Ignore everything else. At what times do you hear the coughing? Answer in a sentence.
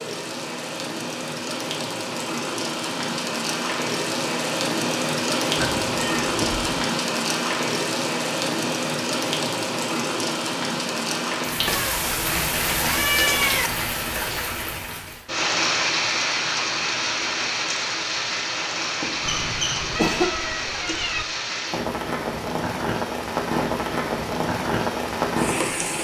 The coughing can be heard from 19.0 to 20.3 s.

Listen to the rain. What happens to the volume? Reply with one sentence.
The volume of the rain stays about the same.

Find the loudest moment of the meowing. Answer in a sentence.
The volume of the meowing peaks at 13 seconds.